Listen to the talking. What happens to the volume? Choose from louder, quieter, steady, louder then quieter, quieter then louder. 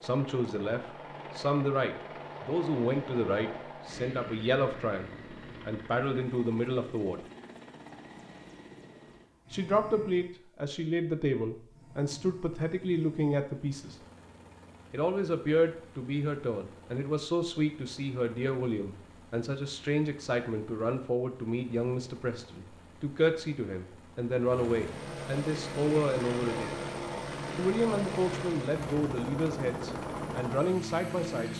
steady.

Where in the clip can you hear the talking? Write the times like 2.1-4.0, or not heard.
0.0-7.2, 9.5-13.9, 14.9-26.8, 27.6-31.5.